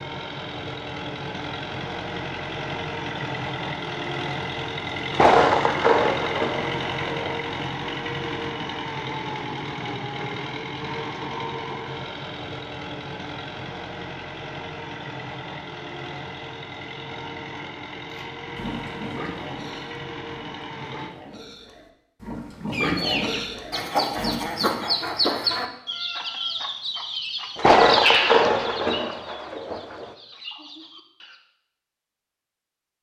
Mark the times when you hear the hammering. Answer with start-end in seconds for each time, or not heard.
not heard.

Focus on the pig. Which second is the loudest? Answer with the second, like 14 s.
23 s.